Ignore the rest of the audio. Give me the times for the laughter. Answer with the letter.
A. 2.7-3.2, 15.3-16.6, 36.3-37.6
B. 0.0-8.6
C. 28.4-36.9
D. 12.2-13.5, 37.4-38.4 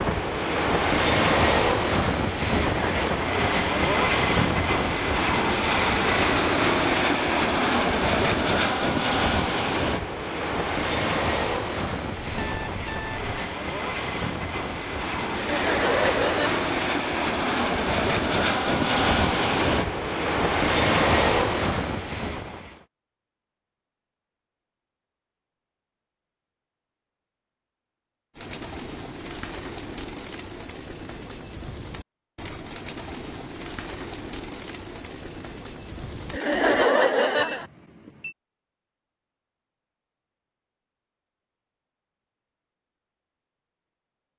A.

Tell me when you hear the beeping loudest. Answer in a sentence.
The volume of the beeping peaks at 13 seconds.